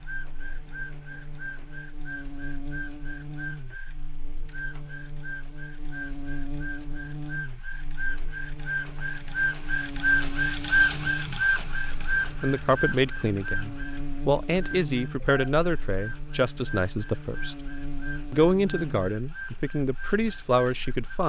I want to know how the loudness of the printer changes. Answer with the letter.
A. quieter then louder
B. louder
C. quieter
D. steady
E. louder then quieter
E.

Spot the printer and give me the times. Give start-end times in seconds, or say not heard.
0.0-21.2.